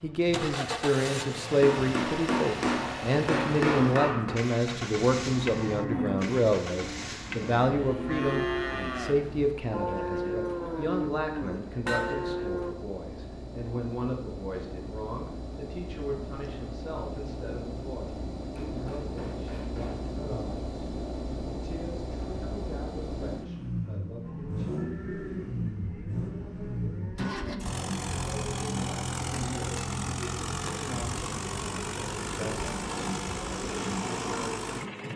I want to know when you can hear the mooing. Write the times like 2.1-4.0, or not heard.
2.6-12.8, 24.2-34.2.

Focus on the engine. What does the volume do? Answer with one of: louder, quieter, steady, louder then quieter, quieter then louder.
quieter then louder.